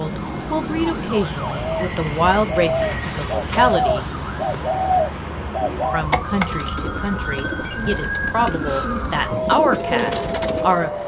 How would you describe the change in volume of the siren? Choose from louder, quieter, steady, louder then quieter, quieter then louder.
louder.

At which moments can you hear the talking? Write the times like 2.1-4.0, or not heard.
0.0-4.0, 5.9-11.0.